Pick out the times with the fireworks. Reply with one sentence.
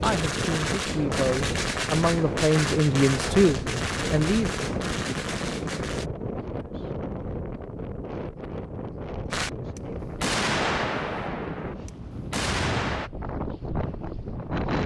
The fireworks can be heard from 0.0 to 6.0 s and from 9.3 to 13.1 s.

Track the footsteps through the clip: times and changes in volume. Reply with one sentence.
The footsteps can't be heard in this clip.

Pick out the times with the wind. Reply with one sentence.
The wind can be heard from 0.0 to 14.8 s.